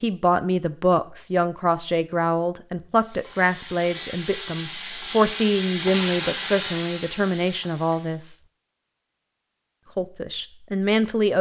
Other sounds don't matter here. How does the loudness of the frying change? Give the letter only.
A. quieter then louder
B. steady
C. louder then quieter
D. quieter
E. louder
C.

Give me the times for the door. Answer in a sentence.
You can't hear the door here.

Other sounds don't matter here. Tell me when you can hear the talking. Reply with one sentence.
The talking can be heard from 0.0 to 8.4 s and from 9.9 to 11.3 s.